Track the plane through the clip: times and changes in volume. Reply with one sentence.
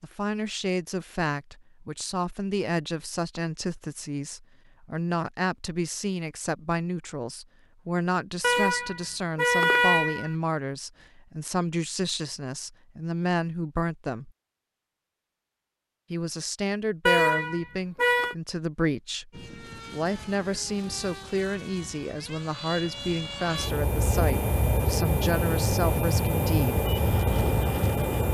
You can hear the plane from 19.3 to 28.2 s, getting louder.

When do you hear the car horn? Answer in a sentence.
The car horn can be heard from 8.4 to 10.3 s and from 17.1 to 18.4 s.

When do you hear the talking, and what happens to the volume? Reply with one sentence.
The talking can be heard from 0.0 to 14.3 s, at a steady volume; and from 16.1 to 26.8 s, at a steady volume.